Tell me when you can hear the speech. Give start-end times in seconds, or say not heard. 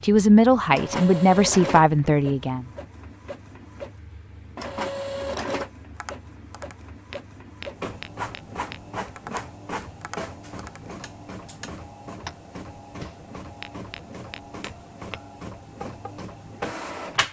0.0-2.6.